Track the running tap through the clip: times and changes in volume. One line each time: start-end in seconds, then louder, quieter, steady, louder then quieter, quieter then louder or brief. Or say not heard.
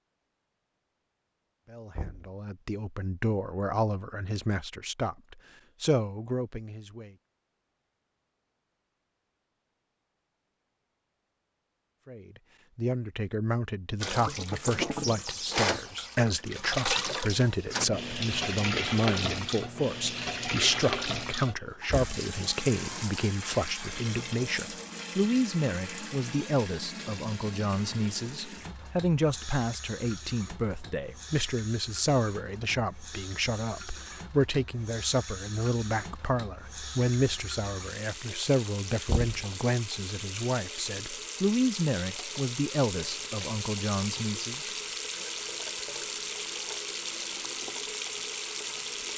14.0-49.1 quieter then louder.